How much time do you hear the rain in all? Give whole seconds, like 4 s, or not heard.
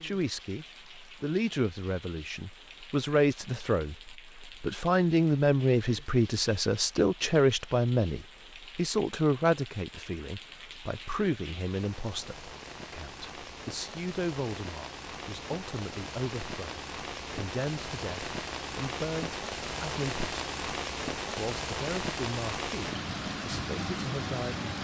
25 s.